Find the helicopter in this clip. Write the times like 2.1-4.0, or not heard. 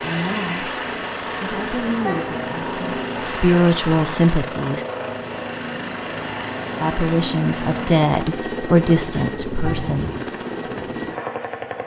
0.0-11.8.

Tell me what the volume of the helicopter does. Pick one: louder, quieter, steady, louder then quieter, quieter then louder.
steady.